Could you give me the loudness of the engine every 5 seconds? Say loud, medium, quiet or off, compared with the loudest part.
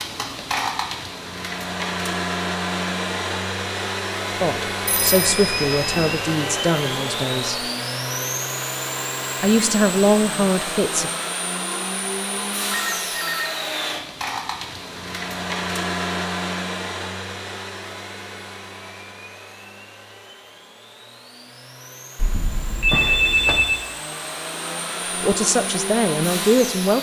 loud, loud, loud, loud, medium, loud.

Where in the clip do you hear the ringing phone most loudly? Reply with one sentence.
The volume of the ringing phone peaks at 23 seconds.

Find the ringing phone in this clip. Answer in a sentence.
You can hear the ringing phone from 4.8 to 6.2 s, from 12.7 to 13.6 s and from 22.1 to 23.9 s.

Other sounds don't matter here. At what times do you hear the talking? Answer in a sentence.
The talking can be heard from 4.4 to 7.6 s, from 9.4 to 11.1 s and from 25.2 to 26.9 s.